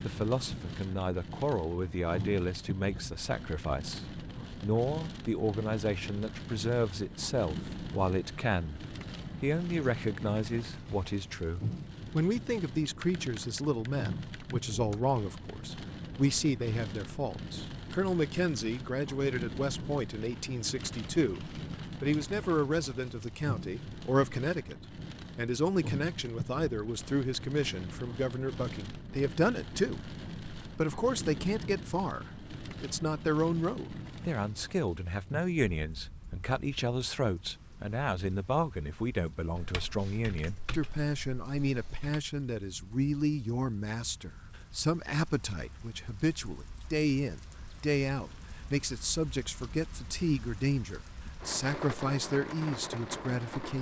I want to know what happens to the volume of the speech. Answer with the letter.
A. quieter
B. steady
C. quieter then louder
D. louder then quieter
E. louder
B.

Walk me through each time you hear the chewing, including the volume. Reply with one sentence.
The chewing can't be heard in this clip.